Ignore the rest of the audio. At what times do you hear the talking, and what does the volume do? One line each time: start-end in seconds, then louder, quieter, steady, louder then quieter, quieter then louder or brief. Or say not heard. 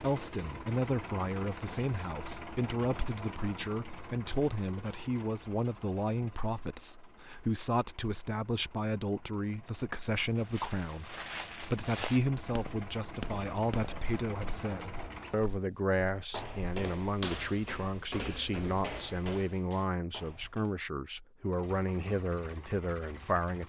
0.0-23.6 steady.